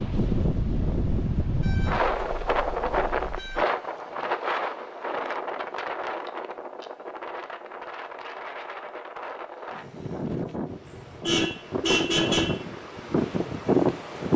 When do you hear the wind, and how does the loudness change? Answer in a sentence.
You can hear the wind from 0.0 to 14.3 s, getting quieter then louder.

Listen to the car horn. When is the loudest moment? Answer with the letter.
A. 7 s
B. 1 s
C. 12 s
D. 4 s
C.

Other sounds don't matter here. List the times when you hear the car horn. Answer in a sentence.
You can hear the car horn from 1.6 to 3.6 s and from 10.8 to 12.6 s.